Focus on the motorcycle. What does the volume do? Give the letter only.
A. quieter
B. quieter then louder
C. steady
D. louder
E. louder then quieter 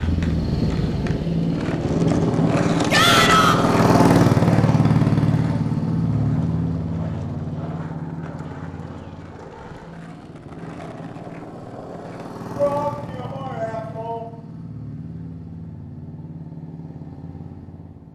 A.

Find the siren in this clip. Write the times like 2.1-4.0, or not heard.
not heard.